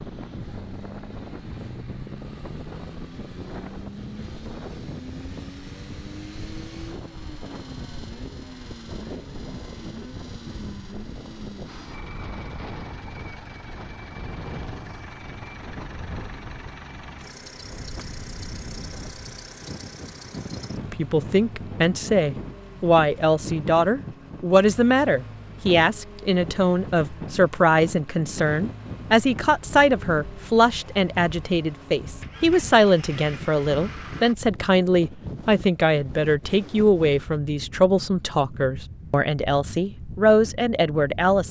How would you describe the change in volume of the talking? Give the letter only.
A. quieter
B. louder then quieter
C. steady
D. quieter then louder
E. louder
C.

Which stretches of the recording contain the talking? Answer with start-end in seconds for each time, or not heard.
20.9-41.4.